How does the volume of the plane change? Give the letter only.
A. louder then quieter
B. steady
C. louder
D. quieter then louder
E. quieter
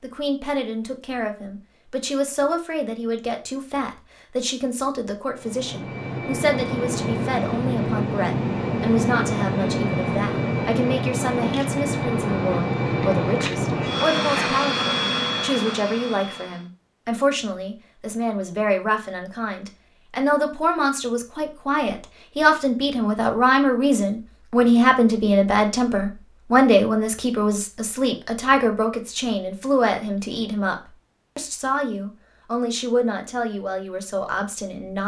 B.